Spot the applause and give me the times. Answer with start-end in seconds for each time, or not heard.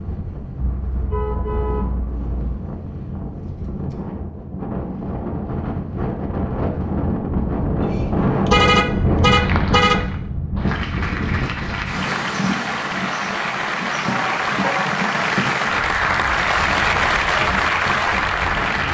8.9-18.8.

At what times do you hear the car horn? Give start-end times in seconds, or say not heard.
0.6-2.6, 8.0-10.0, 14.1-14.9.